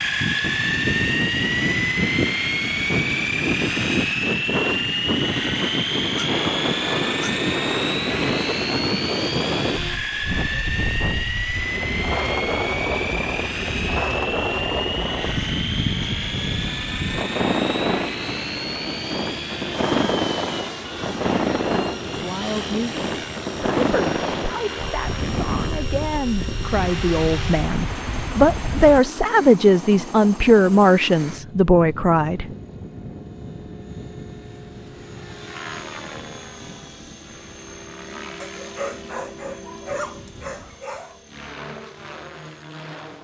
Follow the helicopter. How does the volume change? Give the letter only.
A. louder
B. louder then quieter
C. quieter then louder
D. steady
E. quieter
E.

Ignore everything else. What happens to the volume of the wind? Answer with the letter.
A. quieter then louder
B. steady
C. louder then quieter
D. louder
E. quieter
B.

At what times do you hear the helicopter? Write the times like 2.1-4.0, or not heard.
0.0-43.1.